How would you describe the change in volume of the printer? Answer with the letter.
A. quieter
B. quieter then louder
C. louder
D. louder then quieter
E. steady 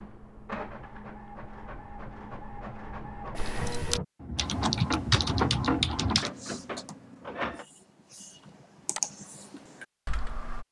D.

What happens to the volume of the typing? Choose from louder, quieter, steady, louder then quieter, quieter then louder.
quieter then louder.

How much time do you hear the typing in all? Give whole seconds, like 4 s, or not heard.
7 s.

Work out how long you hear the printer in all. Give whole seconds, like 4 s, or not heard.
8 s.